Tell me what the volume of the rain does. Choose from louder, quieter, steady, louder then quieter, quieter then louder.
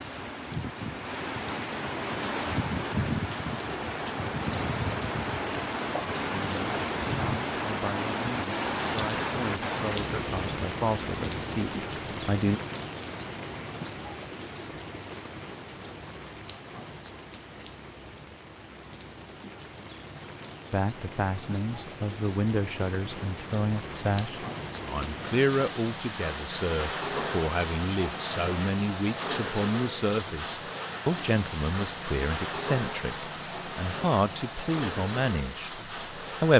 quieter then louder.